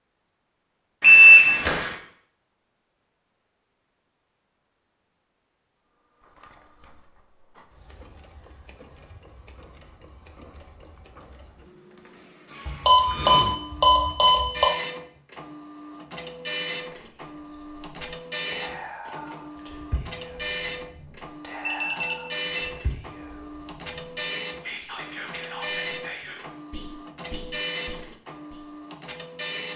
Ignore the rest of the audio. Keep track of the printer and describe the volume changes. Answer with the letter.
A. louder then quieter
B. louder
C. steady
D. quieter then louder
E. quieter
B.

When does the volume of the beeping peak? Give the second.
1 s.